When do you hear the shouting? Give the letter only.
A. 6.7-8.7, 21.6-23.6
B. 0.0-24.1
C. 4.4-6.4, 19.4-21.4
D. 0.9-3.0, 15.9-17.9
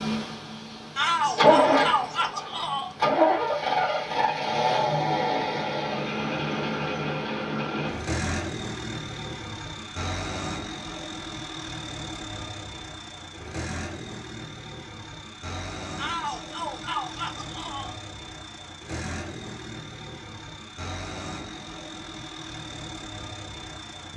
D.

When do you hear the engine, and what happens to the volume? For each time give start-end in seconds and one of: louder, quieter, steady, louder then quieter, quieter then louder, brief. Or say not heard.
0.0-24.1 quieter.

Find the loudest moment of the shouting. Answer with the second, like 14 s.
1 s.